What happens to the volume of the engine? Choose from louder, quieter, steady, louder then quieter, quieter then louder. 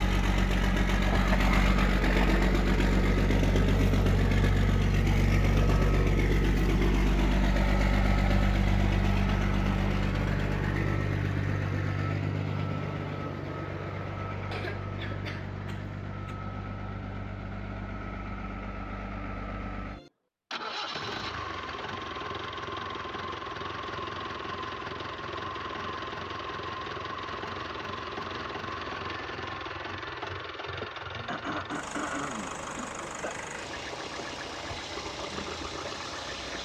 quieter.